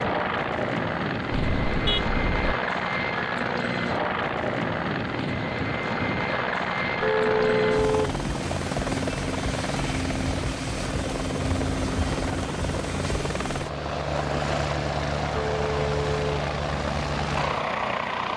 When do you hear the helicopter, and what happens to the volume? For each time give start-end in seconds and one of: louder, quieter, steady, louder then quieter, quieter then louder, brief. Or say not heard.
0.0-18.3 steady.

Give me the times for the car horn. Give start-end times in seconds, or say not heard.
1.3-2.5, 7.0-8.2, 15.3-16.4.